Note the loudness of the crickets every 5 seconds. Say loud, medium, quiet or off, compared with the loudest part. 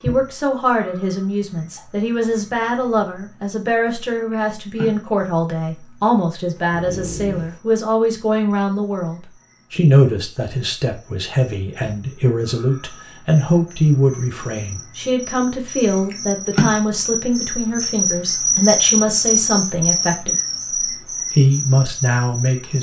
quiet, quiet, quiet, loud, medium.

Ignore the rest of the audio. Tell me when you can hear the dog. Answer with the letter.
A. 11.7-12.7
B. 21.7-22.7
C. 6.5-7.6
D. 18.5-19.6
C.